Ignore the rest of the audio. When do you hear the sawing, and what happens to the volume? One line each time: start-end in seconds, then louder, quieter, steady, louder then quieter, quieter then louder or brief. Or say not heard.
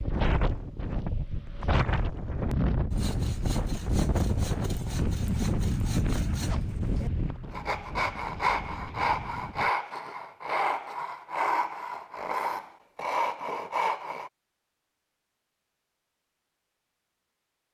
2.9-14.3 louder.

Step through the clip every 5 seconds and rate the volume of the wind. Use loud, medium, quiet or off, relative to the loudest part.
loud, loud, off, off.